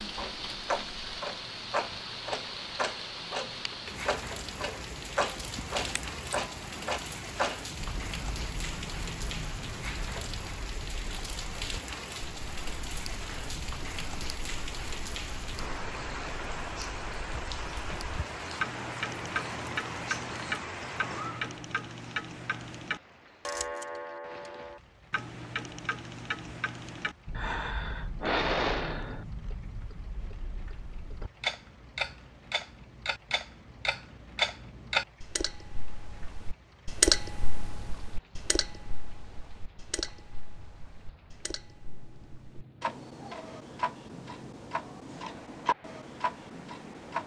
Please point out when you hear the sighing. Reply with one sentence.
You can hear the sighing from 5.8 to 6.2 s and from 27.3 to 29.2 s.